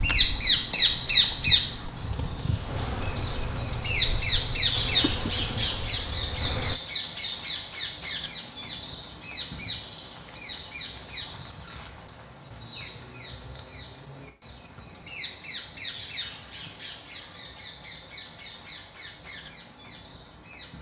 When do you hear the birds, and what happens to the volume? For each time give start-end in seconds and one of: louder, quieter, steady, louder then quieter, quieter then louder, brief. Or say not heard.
0.0-20.7 quieter.